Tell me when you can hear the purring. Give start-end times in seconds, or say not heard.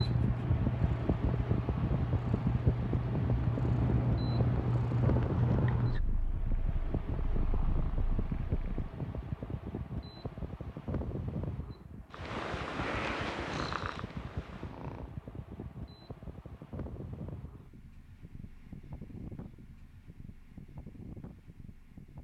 0.0-8.8, 12.1-15.2.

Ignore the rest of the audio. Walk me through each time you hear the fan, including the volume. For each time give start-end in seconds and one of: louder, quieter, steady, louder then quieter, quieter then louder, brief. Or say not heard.
0.0-22.1 quieter.